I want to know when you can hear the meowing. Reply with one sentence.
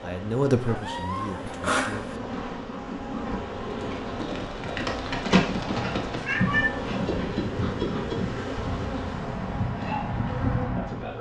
You can hear the meowing from 0.8 to 2.1 s and from 6.2 to 6.8 s.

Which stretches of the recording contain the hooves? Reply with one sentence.
You can hear the hooves from 3.6 to 11.1 s.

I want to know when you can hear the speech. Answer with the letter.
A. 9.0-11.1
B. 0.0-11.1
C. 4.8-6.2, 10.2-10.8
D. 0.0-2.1
D.